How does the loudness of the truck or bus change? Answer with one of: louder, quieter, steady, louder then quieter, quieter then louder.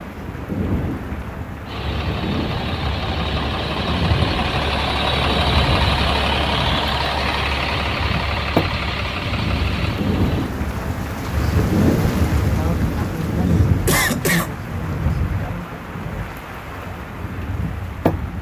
louder then quieter.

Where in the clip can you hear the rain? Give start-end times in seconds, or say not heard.
0.0-18.3.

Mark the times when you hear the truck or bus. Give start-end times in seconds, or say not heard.
1.6-10.6.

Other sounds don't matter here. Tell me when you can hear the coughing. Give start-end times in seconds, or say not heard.
12.9-14.5.